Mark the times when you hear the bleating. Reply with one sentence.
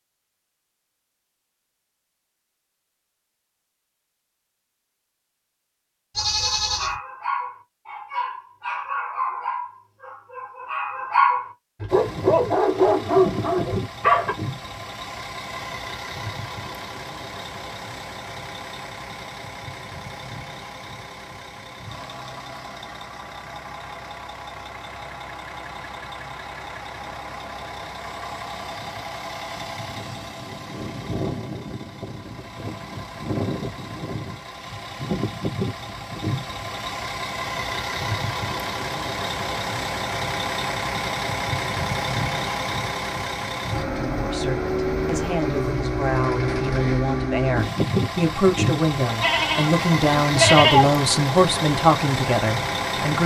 You can hear the bleating from 6.2 to 7.0 s and from 49.2 to 50.9 s.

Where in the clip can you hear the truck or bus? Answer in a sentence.
The truck or bus can be heard from 11.8 to 53.2 s.